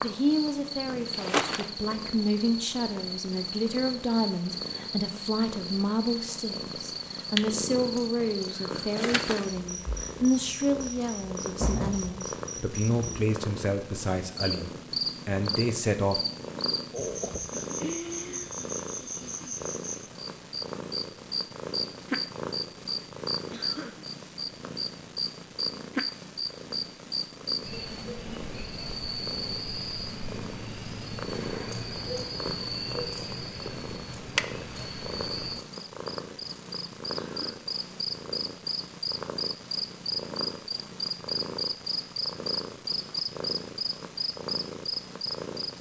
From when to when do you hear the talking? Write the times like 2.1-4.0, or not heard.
0.0-16.2.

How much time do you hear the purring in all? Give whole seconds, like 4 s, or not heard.
46 s.